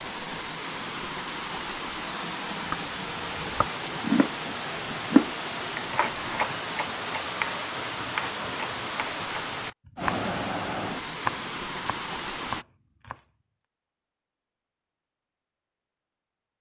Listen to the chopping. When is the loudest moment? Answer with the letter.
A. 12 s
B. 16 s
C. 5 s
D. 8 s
C.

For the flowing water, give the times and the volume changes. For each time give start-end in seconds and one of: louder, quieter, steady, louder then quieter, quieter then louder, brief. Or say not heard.
0.0-12.7 steady.